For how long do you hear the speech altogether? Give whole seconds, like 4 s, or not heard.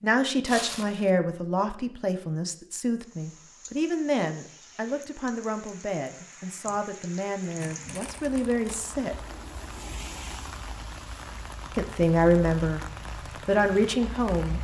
11 s.